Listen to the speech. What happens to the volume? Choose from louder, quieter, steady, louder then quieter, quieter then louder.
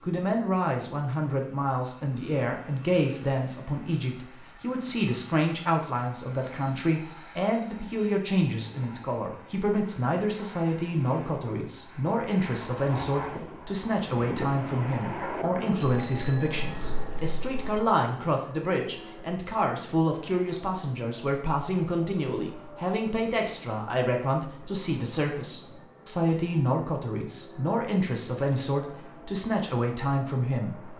steady.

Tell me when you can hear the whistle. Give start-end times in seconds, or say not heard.
not heard.